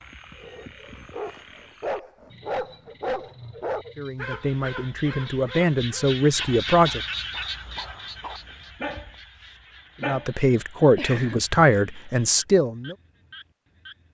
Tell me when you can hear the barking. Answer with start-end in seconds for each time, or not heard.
0.3-10.3.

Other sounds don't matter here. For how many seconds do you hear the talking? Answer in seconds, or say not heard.
6 s.